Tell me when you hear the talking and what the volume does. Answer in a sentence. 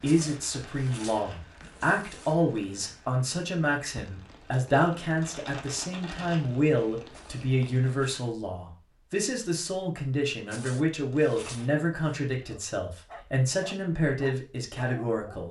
The talking can be heard from 0.0 to 15.4 s, at a steady volume.